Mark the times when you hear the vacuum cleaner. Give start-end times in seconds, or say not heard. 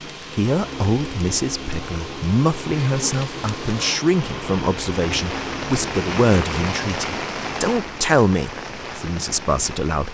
0.0-7.0.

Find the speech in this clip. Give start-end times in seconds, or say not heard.
0.3-10.0.